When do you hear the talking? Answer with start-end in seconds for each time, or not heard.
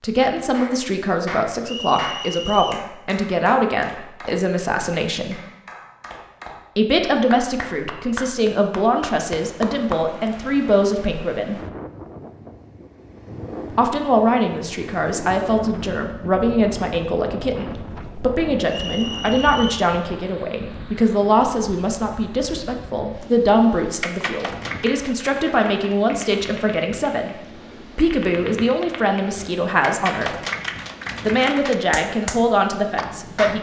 0.0-5.3, 6.8-11.6, 13.7-30.4, 31.2-33.5.